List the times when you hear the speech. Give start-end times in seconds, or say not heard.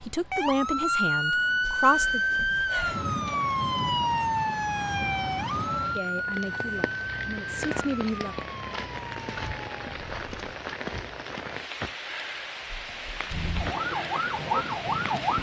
0.0-2.2, 6.0-8.3.